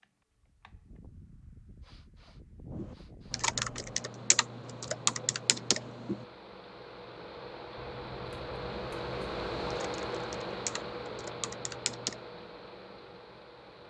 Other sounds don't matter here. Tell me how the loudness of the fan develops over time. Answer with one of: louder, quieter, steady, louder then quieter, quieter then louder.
louder then quieter.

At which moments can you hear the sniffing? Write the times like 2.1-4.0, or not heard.
1.8-3.5.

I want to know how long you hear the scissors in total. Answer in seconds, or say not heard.
2 s.